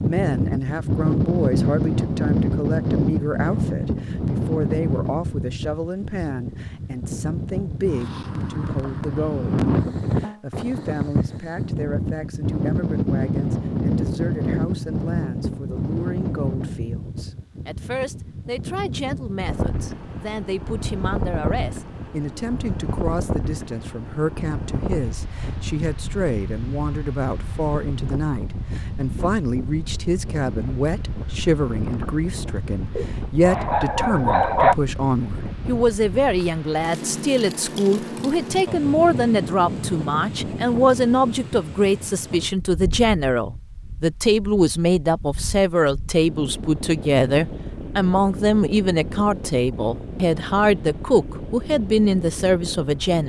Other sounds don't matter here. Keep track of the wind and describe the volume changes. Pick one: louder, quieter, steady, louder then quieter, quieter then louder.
quieter.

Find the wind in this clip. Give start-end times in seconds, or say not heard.
0.0-53.2.